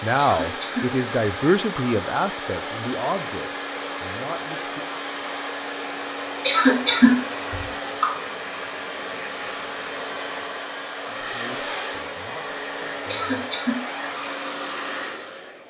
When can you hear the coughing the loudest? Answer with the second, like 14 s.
7 s.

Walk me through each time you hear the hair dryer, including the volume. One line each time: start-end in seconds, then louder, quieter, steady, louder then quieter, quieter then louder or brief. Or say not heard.
0.0-15.6 steady.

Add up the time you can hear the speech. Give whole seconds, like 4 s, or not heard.
7 s.